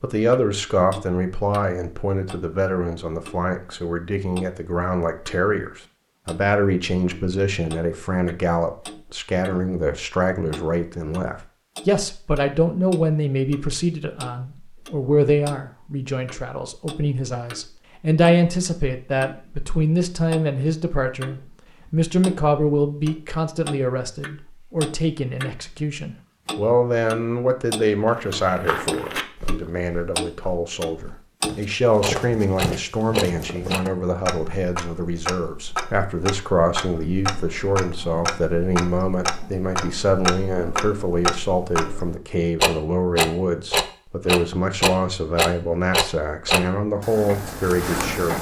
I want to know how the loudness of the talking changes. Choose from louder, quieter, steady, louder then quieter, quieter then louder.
steady.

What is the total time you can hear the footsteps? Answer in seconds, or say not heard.
6 s.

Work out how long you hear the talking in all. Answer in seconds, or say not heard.
48 s.